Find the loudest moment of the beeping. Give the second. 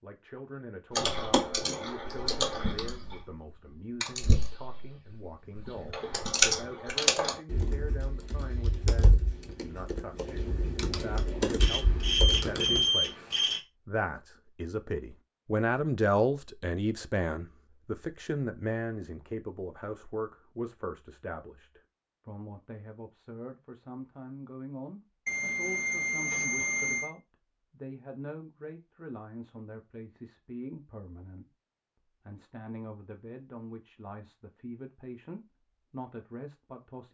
13 s.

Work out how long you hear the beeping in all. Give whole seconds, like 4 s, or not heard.
4 s.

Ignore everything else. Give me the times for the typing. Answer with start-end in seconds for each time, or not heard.
0.9-3.2, 4.0-12.8.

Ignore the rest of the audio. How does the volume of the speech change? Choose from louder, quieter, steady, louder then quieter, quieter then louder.
louder then quieter.